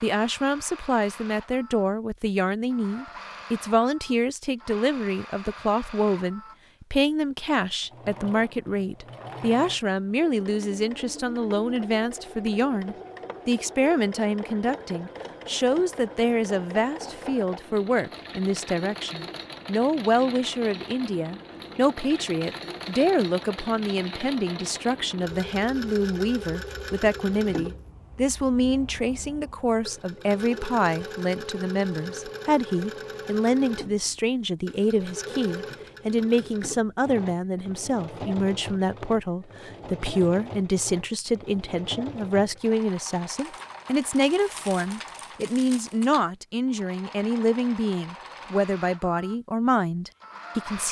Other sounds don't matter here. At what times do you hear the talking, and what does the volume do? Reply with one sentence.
The talking can be heard from 0.0 to 50.8 s, at a steady volume.